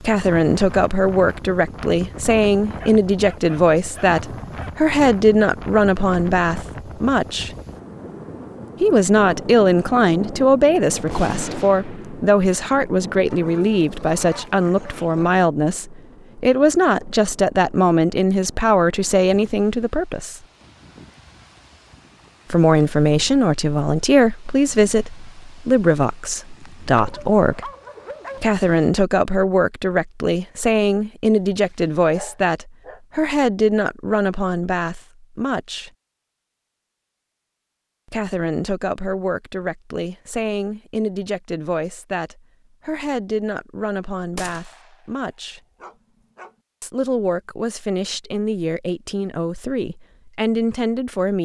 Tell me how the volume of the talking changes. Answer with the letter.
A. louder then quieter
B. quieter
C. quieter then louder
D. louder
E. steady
B.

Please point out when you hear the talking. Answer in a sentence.
You can hear the talking from 0.0 to 7.5 s, from 8.8 to 20.4 s, from 22.5 to 27.7 s, from 28.4 to 35.9 s, from 38.1 to 45.6 s and from 46.8 to 51.4 s.